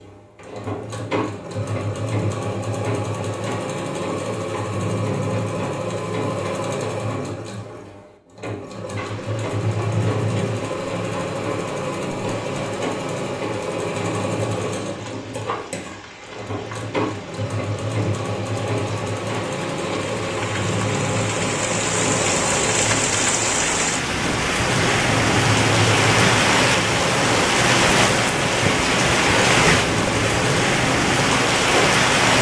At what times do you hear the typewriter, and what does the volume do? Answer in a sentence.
You can't hear the typewriter here.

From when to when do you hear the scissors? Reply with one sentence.
You can't hear the scissors here.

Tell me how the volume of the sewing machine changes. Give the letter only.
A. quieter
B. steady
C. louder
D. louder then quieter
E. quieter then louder
B.